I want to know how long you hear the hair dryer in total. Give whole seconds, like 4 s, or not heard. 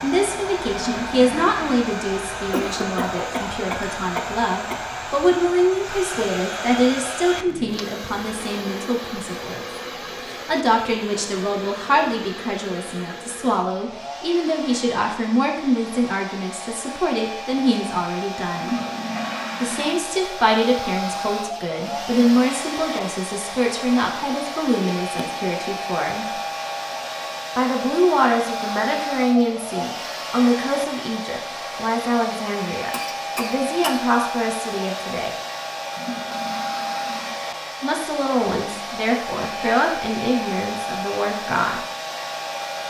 43 s.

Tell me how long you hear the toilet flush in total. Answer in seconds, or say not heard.
4 s.